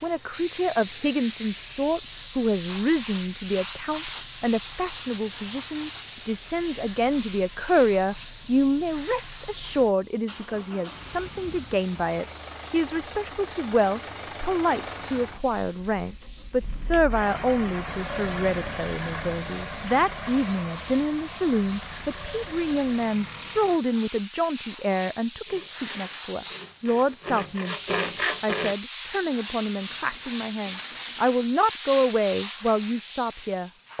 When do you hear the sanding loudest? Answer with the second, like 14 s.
28 s.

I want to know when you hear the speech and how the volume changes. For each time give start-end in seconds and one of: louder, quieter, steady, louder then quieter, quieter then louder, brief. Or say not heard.
0.0-33.9 steady.